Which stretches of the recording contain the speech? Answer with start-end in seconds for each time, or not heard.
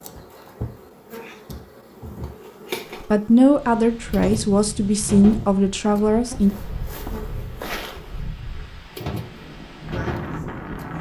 3.0-6.5.